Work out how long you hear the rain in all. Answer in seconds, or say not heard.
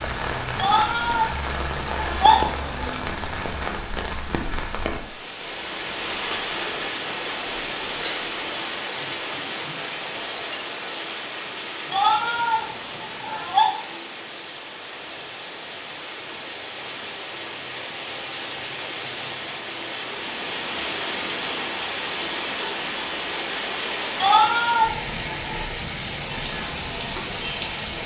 28 s.